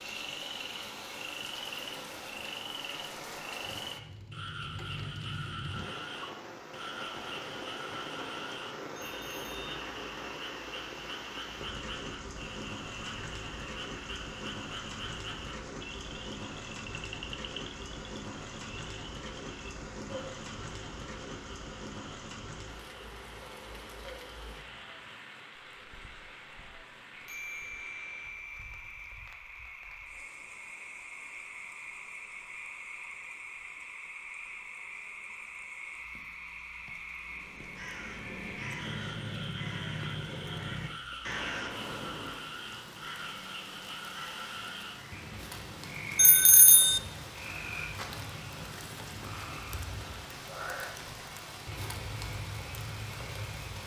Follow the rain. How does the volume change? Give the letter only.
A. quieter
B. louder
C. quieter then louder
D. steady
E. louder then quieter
C.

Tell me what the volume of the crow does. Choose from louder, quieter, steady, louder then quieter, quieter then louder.
quieter.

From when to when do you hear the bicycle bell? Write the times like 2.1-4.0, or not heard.
8.9-9.6, 27.2-29.1, 46.1-47.0.